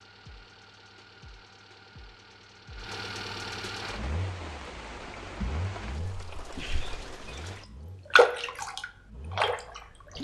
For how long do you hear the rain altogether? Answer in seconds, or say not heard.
6 s.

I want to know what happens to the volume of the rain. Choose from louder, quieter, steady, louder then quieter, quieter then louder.
louder then quieter.